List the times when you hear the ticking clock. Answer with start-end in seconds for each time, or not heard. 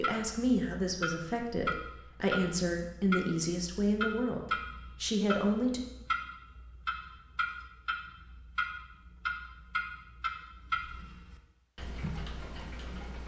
0.0-13.2.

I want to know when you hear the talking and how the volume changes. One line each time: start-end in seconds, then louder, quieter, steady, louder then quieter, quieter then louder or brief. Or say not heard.
0.0-5.8 steady.